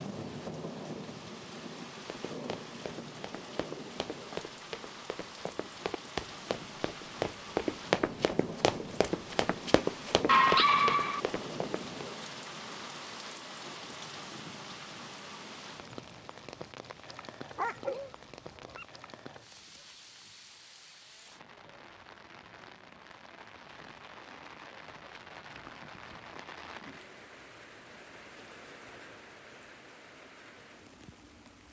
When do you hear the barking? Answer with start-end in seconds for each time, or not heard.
10.2-11.2, 17.6-18.9.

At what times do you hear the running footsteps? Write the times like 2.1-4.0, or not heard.
2.3-11.8.